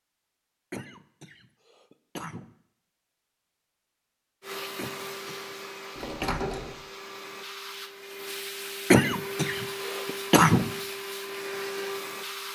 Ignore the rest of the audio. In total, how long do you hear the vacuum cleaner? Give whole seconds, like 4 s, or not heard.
8 s.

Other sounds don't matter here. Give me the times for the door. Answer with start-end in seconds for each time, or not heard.
6.0-6.8.